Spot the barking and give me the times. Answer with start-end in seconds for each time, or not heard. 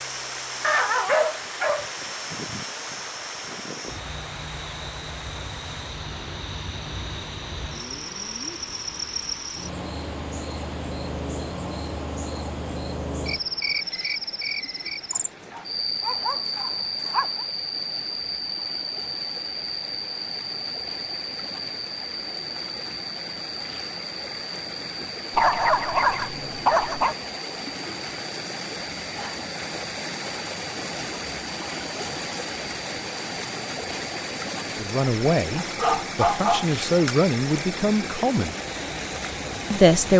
0.6-1.9, 15.1-17.4, 25.3-27.1, 35.6-37.1.